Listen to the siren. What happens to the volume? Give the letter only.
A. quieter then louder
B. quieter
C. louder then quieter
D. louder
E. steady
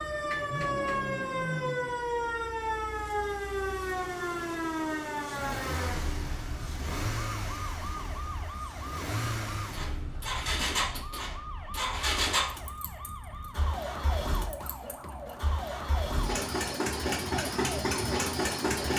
B.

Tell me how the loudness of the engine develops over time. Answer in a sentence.
The loudness of the engine goes up.